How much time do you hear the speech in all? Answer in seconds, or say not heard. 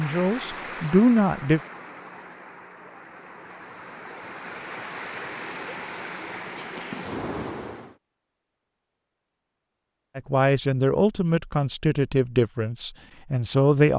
5 s.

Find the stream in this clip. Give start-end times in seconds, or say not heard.
0.0-8.0.